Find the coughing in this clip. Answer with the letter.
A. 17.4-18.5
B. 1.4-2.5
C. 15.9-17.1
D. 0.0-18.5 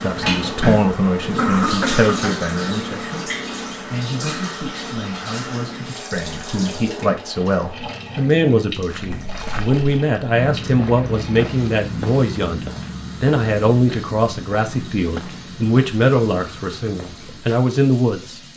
B.